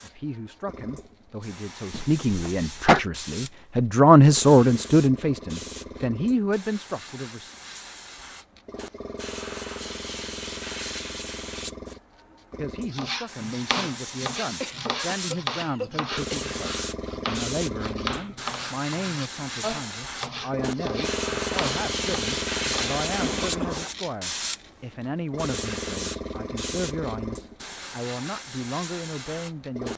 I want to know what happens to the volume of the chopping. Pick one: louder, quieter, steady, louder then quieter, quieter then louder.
steady.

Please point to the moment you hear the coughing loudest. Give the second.
3 s.